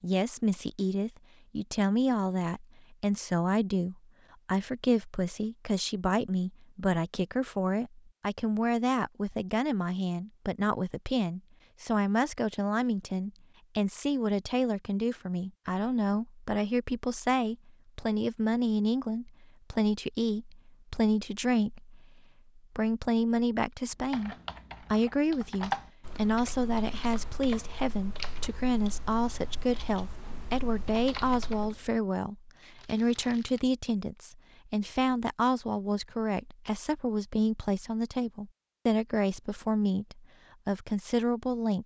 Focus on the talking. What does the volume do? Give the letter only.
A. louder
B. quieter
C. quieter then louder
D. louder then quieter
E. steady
E.